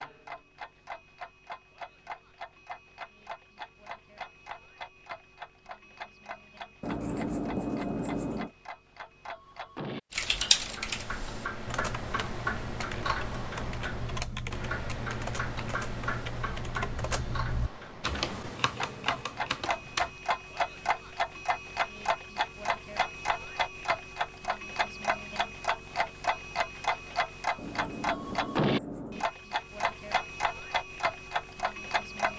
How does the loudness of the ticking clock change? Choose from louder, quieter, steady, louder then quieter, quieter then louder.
louder.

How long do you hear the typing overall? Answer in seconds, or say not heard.
10 s.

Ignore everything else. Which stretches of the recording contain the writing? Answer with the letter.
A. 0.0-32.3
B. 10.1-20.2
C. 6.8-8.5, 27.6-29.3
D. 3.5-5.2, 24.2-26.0
C.